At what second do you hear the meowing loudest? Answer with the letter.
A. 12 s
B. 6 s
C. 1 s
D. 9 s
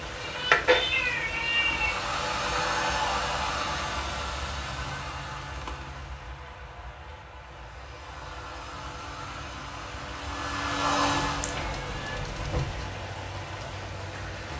C.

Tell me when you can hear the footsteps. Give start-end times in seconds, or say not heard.
not heard.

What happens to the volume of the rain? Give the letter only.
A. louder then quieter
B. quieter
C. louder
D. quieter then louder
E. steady
D.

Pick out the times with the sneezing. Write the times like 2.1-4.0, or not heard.
not heard.